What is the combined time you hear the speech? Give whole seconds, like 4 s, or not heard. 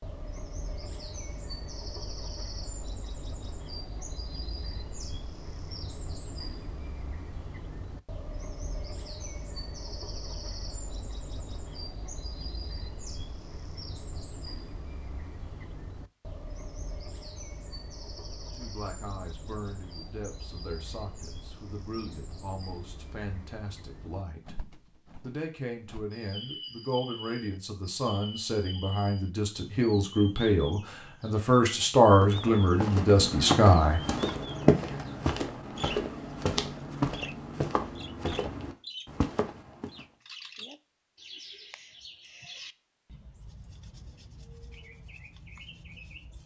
15 s.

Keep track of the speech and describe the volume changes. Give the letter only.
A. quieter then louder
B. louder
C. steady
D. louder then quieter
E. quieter
B.